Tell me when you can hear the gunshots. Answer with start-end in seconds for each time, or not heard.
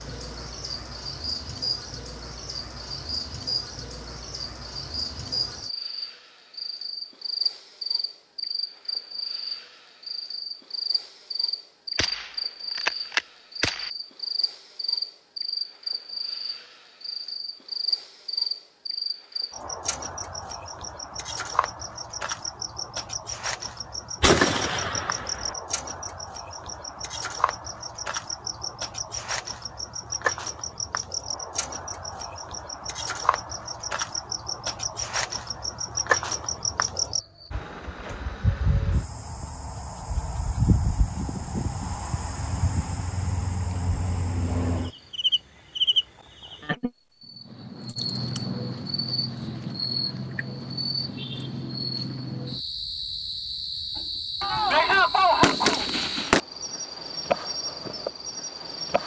11.9-13.9, 24.2-25.6, 54.4-56.4.